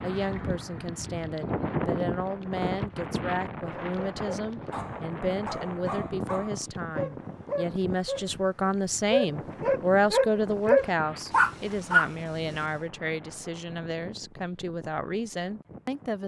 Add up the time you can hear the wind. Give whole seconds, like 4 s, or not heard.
16 s.